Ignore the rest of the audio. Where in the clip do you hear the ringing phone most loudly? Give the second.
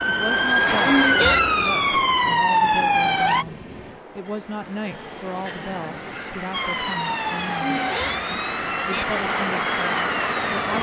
1 s.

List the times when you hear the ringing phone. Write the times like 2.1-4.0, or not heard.
0.8-1.6, 7.6-9.1.